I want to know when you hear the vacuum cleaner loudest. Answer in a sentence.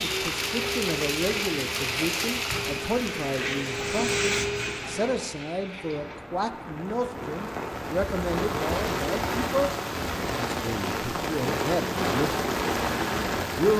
The volume of the vacuum cleaner peaks at 4 seconds.